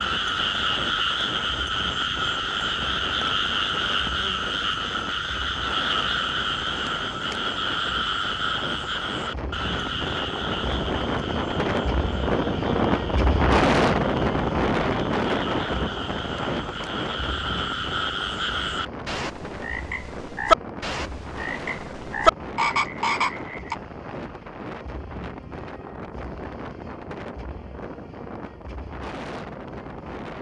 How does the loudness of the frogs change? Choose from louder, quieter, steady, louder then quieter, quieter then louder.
quieter then louder.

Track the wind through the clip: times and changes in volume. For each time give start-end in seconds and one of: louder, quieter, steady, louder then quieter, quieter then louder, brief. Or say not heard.
0.0-30.3 louder then quieter.